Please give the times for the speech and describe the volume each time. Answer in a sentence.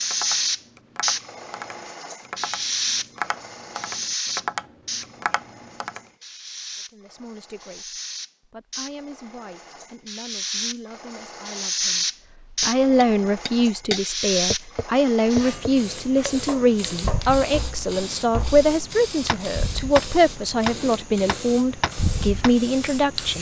The speech can be heard from 6.9 to 23.3 s, getting louder.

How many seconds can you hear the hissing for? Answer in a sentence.
The hissing can be heard for 23 seconds in total.